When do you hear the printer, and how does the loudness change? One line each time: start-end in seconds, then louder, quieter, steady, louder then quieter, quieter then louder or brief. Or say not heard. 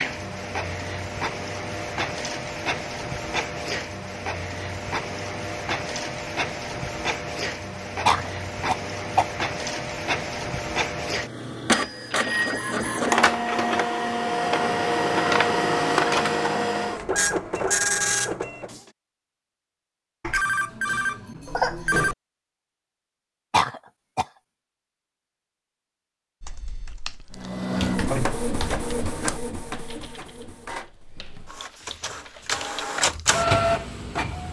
0.0-18.8 louder
27.3-34.4 quieter then louder.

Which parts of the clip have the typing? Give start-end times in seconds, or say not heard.
26.4-32.9.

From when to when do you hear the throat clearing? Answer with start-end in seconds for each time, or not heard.
8.1-9.3, 23.5-24.2.